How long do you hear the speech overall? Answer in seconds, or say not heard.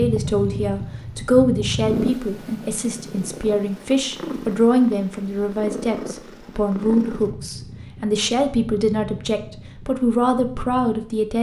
11 s.